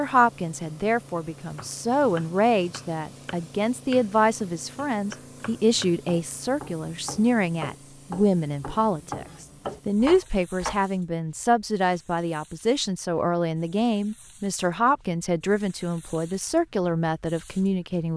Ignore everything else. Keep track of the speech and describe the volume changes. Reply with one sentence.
The loudness of the speech stays about the same.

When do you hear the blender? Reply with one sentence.
You can't hear the blender here.